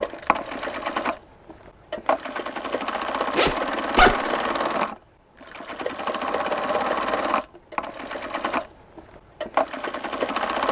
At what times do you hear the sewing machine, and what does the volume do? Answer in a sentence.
The sewing machine can be heard from 0.0 to 10.6 s, at a steady volume.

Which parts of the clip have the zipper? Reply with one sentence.
The zipper can be heard from 3.3 to 4.3 s.